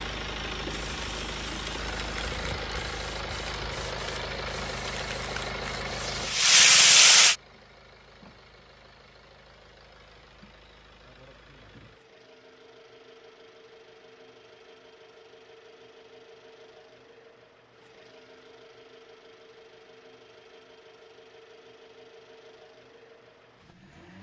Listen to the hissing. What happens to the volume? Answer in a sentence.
The volume of the hissing goes up.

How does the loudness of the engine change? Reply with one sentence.
The loudness of the engine goes down.